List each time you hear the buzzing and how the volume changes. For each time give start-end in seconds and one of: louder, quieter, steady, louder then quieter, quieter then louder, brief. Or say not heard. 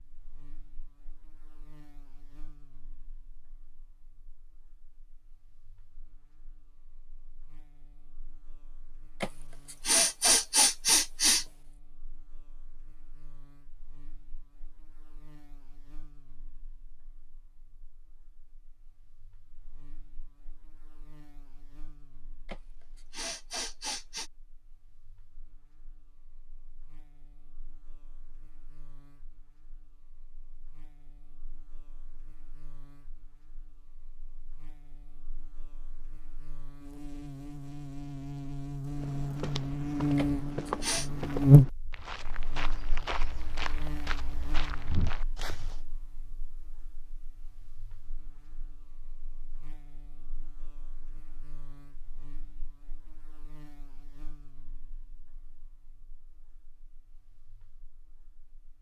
0.0-58.7 louder then quieter.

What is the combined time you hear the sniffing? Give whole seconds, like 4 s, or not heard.
5 s.